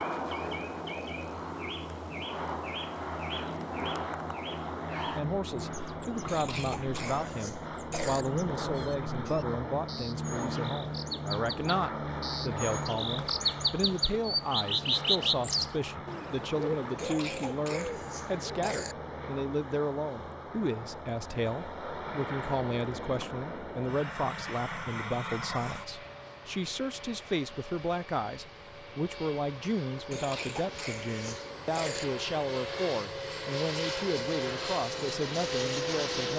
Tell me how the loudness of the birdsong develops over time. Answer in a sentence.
The volume of the birdsong goes up.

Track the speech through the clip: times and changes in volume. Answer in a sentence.
You can hear the speech from 5.1 to 36.3 s, at a steady volume.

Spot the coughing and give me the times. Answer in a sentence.
You can hear the coughing from 6.2 to 8.2 s, from 16.9 to 18.9 s and from 30.1 to 32.0 s.